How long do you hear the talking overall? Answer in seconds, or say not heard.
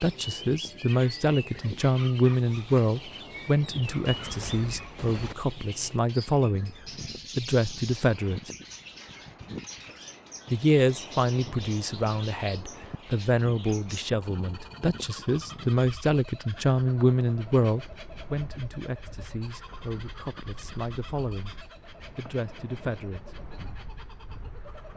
20 s.